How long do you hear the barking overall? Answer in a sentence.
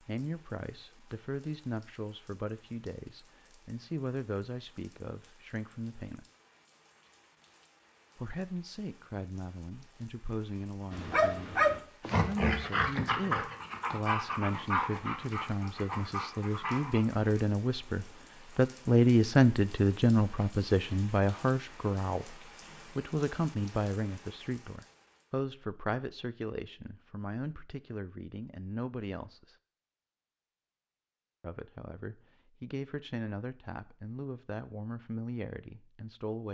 You can hear the barking for 6 seconds altogether.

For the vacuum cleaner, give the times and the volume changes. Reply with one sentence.
The vacuum cleaner can't be heard in this clip.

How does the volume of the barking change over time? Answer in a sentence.
The volume of the barking goes down.